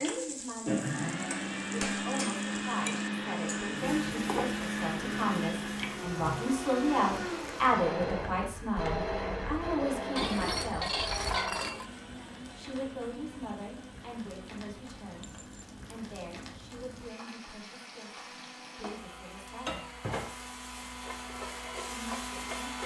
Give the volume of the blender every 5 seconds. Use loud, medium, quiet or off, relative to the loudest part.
loud, loud, medium, quiet, medium.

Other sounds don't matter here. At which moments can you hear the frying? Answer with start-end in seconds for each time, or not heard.
0.0-22.8.